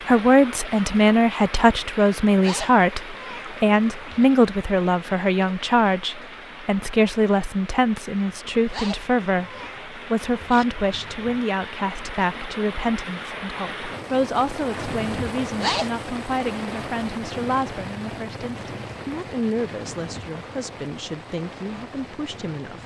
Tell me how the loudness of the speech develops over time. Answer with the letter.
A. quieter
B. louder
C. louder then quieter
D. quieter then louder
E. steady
A.